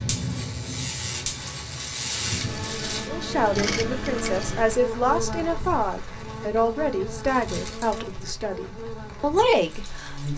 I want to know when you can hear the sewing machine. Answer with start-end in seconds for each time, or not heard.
2.2-4.9.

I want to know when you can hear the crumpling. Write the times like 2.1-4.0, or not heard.
1.4-3.1, 7.2-8.1.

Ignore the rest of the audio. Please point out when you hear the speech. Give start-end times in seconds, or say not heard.
3.0-10.3.